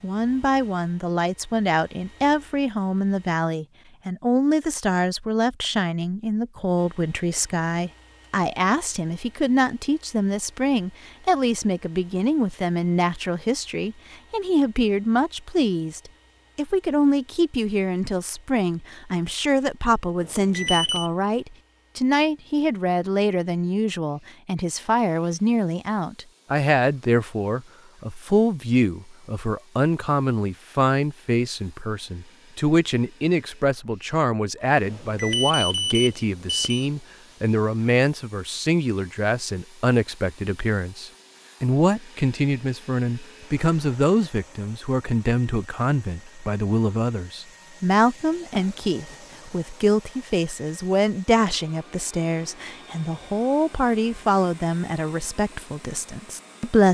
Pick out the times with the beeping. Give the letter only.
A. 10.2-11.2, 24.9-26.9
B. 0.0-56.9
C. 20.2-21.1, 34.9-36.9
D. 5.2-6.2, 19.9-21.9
C.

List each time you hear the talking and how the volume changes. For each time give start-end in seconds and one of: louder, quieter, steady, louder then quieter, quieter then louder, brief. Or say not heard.
0.0-56.9 steady.